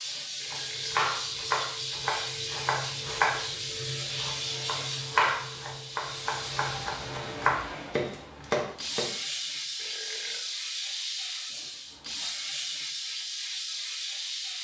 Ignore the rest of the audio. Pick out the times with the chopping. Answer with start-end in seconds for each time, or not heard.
0.5-9.1.